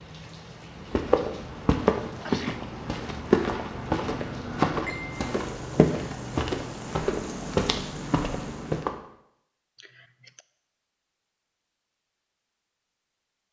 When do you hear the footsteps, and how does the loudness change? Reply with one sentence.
You can hear the footsteps from 0.8 to 8.9 s, at a steady volume.